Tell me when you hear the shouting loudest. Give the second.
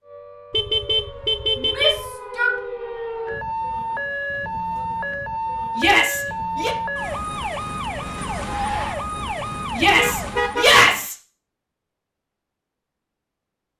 11 s.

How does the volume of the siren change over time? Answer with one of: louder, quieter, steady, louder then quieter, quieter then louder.
louder.